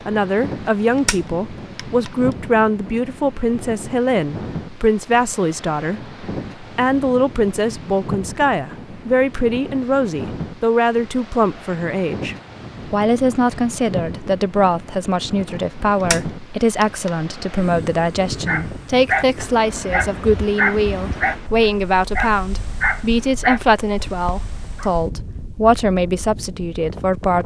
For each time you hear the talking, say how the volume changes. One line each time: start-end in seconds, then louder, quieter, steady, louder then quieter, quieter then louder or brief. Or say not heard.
0.1-27.4 steady.